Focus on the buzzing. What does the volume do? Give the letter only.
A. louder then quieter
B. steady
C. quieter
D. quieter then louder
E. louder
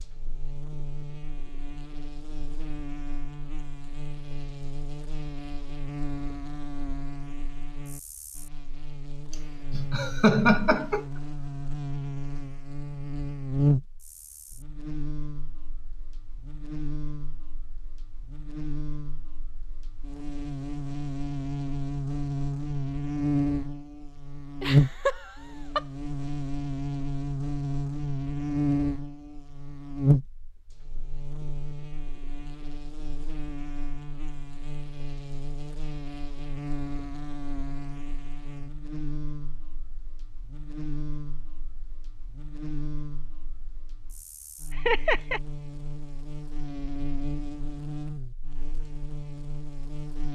A.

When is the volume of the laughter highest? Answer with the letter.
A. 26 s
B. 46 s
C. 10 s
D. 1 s
C.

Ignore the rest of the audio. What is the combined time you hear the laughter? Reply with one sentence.
You can hear the laughter for 4 seconds altogether.